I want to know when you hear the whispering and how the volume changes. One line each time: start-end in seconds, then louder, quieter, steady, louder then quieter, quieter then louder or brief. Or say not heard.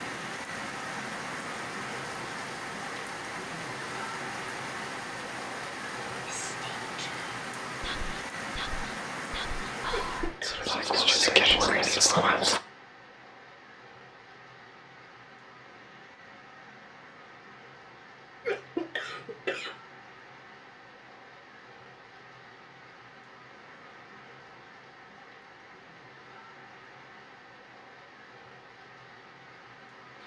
6.2-12.6 louder.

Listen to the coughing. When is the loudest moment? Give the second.
19 s.